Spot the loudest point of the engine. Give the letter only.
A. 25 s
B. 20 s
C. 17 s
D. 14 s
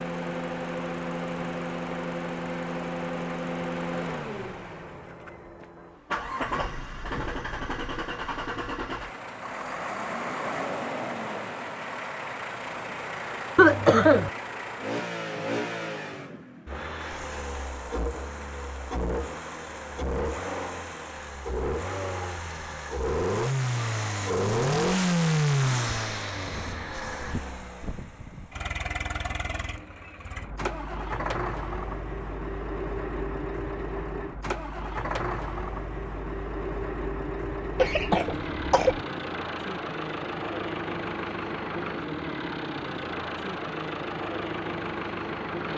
A.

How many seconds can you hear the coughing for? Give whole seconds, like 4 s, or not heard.
2 s.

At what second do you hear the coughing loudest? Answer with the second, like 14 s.
14 s.